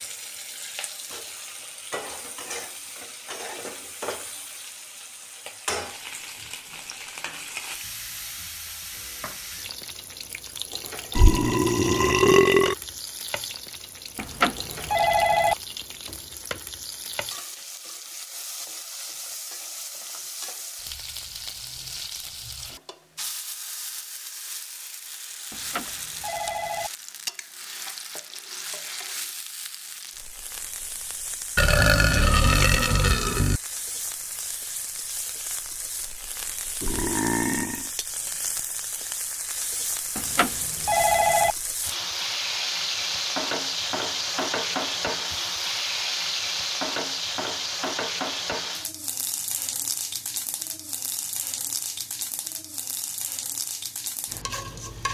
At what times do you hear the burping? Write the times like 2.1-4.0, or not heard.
11.2-12.8, 31.6-33.6, 36.8-37.9.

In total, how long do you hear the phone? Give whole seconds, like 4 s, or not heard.
4 s.